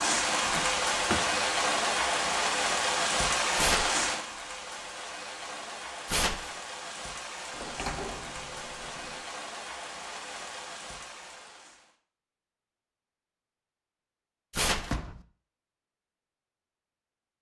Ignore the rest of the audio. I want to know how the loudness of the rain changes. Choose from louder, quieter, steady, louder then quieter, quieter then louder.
quieter.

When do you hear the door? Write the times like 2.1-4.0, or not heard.
0.4-1.4, 7.5-9.3, 14.7-15.2.